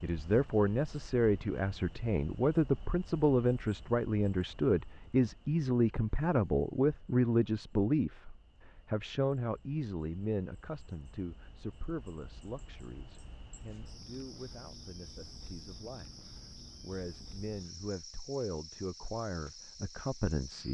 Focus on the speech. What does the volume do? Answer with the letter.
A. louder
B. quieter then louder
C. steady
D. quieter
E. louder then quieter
B.